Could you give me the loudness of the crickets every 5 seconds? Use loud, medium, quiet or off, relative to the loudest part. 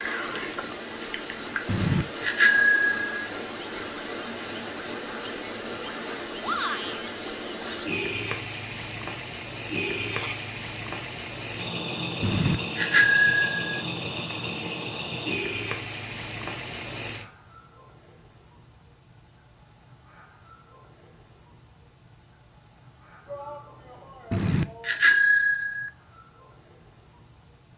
loud, loud, loud, loud, quiet, quiet.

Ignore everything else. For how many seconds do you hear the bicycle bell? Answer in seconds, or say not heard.
5 s.